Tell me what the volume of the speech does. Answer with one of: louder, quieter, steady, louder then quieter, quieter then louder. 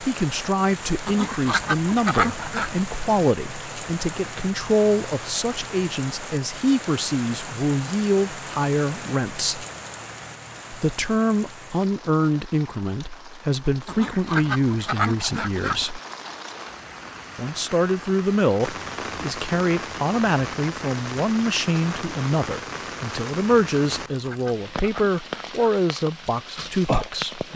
steady.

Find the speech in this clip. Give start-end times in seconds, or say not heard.
0.0-9.7, 10.7-16.0, 17.4-27.5.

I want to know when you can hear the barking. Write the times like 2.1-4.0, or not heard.
not heard.